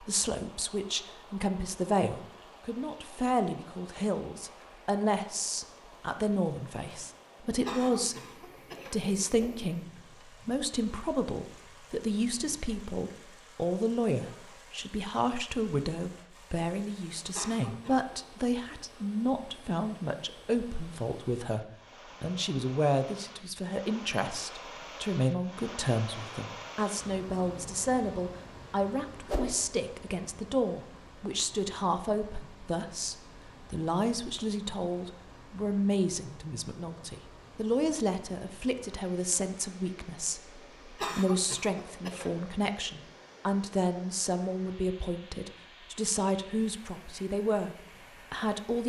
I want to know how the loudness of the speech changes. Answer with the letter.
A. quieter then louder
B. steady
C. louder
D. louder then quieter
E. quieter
B.